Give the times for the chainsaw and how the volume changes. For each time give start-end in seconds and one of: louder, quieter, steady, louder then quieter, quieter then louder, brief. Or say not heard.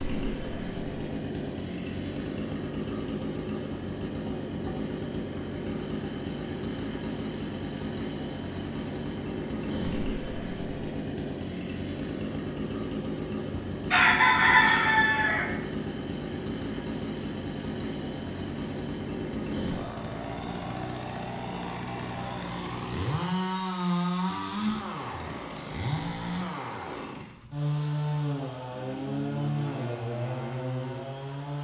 0.0-31.5 steady.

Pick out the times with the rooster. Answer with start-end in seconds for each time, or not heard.
13.5-15.4.